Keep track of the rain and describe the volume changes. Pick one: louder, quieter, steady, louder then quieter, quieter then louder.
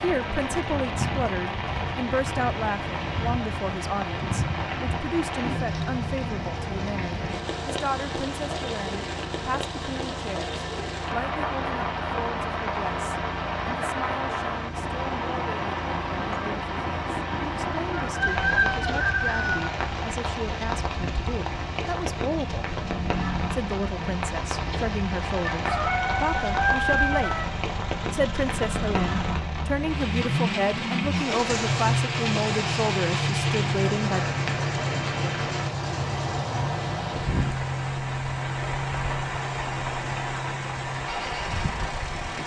steady.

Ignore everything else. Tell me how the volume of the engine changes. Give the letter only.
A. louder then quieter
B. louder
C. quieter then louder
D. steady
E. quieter
B.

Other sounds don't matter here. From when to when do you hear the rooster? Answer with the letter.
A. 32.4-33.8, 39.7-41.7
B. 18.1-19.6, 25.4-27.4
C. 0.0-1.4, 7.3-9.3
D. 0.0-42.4
B.